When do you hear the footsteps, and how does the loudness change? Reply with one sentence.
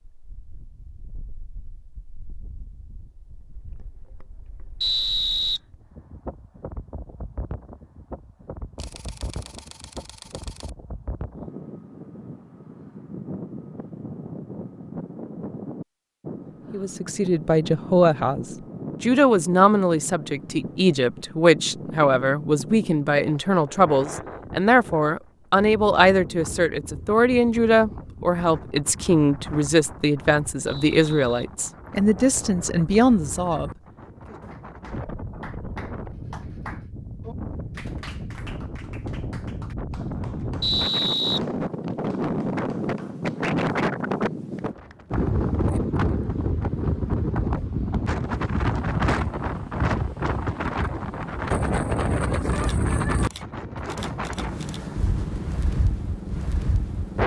The footsteps can't be heard in this clip.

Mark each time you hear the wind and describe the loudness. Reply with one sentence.
The wind can be heard from 0.1 to 57.2 s, getting louder.